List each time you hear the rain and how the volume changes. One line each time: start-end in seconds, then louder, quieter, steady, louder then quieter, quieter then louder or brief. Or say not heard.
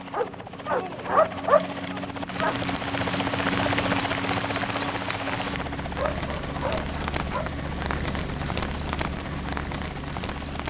2.2-10.6 steady.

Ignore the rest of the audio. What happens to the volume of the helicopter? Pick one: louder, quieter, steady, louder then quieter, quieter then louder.
louder then quieter.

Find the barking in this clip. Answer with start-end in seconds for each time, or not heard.
0.1-2.6, 6.0-7.5.